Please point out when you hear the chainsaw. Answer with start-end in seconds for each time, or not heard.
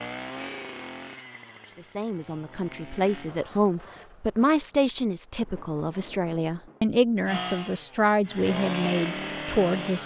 0.0-3.3, 7.2-10.0.